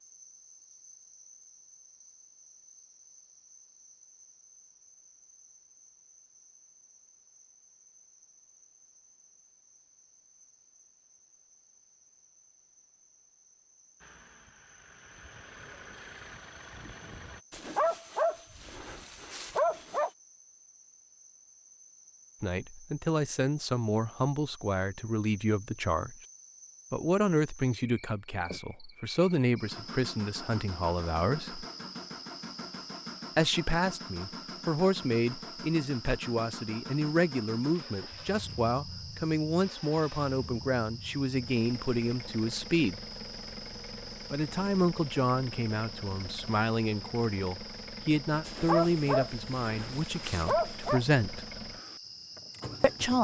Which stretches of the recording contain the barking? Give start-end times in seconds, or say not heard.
17.5-20.1, 48.5-51.0.